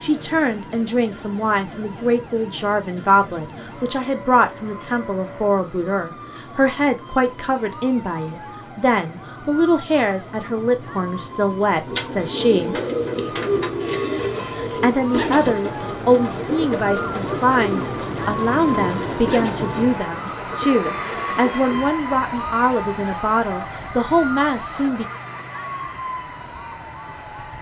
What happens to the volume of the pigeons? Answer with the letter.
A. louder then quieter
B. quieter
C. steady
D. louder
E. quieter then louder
B.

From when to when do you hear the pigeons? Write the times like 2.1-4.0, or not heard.
11.8-21.8.